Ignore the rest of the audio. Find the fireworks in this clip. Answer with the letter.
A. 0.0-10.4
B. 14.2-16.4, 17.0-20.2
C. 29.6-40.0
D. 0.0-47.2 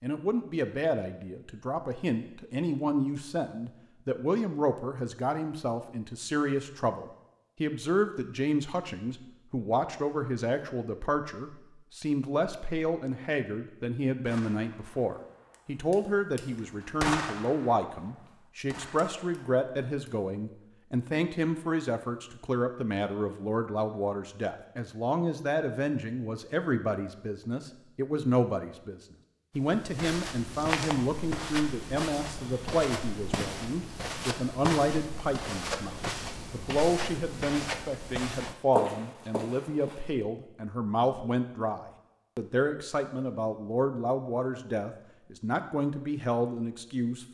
B.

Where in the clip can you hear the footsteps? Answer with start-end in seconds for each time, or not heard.
29.6-40.0.